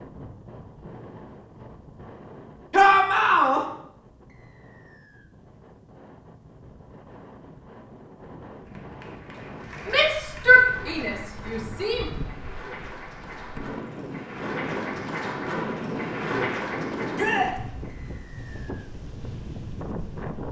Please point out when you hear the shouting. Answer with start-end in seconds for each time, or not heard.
2.7-3.6, 9.8-12.1, 17.1-17.6.